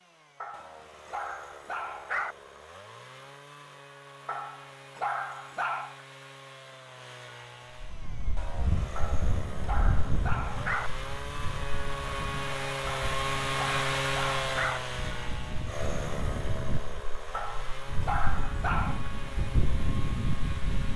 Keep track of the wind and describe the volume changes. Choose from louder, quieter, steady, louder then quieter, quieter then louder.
quieter then louder.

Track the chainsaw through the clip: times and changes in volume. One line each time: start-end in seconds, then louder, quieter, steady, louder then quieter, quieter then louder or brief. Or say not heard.
0.0-20.9 louder then quieter.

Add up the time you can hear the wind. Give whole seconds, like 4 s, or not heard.
13 s.